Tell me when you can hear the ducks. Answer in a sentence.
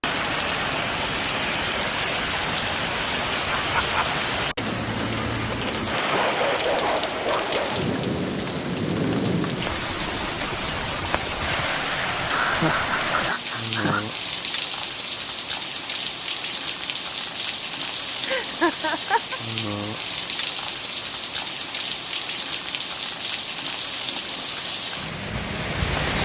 The ducks can't be heard in this clip.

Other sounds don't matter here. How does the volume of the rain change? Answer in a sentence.
The loudness of the rain stays about the same.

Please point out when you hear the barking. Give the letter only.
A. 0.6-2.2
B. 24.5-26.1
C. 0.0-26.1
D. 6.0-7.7
D.